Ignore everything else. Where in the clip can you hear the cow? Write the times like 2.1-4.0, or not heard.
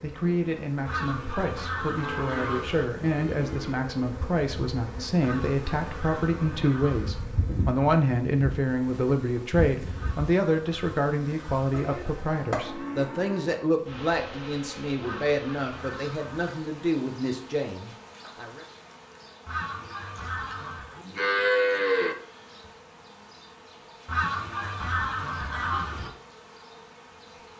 1.9-4.0, 11.7-13.7, 20.5-22.1.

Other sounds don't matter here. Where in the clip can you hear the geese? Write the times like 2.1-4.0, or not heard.
0.8-2.9, 5.2-7.2, 9.9-11.7, 15.0-16.6, 19.4-20.9, 24.1-26.1.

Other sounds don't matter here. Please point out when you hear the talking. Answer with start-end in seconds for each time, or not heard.
0.0-18.6.